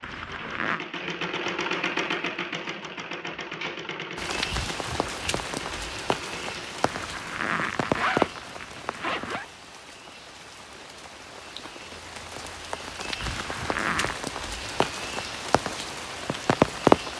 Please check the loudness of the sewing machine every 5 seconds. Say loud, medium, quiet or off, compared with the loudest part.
loud, medium, off, off.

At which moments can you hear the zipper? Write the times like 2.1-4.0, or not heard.
0.0-0.8, 6.8-9.4, 13.2-14.2.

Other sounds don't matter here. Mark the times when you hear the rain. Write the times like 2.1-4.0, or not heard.
4.2-17.1.